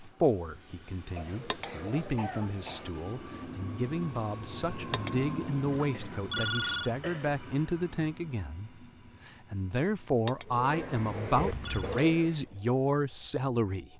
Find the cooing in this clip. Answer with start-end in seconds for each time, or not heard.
10.4-12.4.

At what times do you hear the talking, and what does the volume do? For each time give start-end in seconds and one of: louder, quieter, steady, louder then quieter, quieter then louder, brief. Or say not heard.
0.0-13.9 louder.